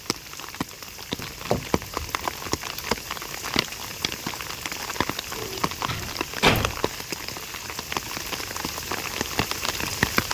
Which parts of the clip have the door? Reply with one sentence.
The door can be heard from 1.1 to 2.4 s and from 5.3 to 6.9 s.